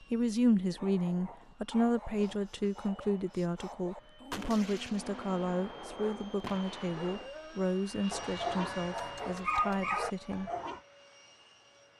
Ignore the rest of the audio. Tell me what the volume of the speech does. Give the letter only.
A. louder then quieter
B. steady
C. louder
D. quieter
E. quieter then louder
D.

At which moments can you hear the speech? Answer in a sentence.
The speech can be heard from 0.0 to 10.5 s.